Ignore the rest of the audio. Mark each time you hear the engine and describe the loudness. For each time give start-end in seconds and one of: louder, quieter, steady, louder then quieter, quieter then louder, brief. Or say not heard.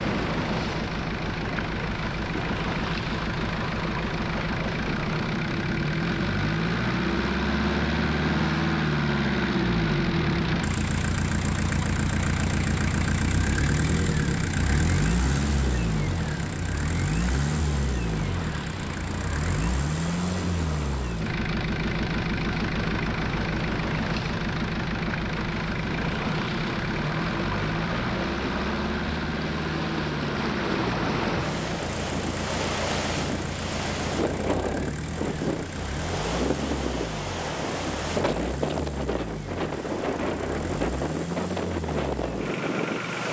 0.0-43.2 quieter.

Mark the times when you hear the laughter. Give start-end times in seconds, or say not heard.
not heard.